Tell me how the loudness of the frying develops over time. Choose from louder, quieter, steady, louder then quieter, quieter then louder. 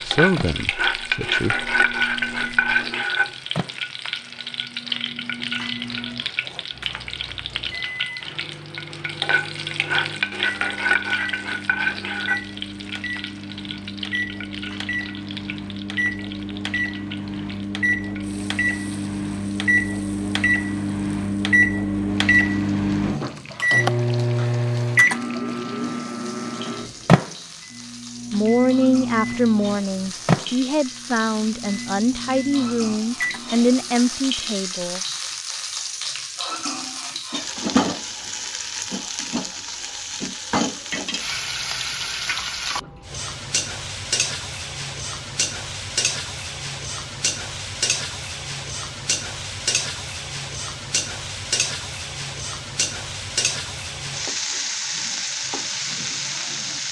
quieter then louder.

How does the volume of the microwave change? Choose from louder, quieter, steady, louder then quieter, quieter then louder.
louder then quieter.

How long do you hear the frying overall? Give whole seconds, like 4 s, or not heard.
57 s.